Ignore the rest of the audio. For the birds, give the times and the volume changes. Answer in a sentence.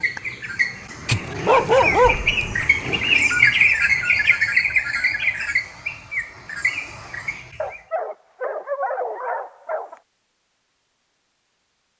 You can hear the birds from 0.0 to 7.8 s, getting louder then quieter.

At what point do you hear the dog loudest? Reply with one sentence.
The loudest moment of the dog is at 2 seconds.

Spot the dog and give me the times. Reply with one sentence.
The dog can be heard from 1.1 to 3.0 s and from 7.6 to 10.0 s.